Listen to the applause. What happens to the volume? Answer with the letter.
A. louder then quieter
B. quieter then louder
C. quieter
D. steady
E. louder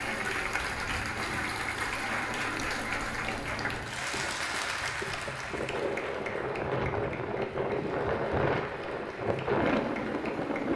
C.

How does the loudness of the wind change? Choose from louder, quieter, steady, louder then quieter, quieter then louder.
louder.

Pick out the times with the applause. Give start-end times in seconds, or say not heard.
0.0-10.7.